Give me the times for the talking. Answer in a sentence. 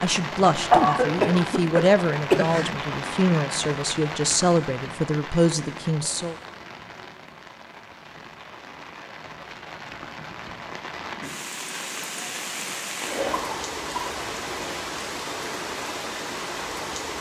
You can hear the talking from 0.0 to 6.3 s.